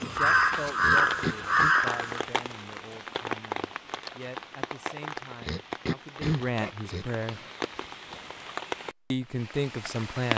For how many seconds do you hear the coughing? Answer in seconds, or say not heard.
3 s.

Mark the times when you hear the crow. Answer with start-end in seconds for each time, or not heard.
0.0-2.2.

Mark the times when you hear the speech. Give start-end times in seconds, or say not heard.
0.0-7.4, 9.1-10.3.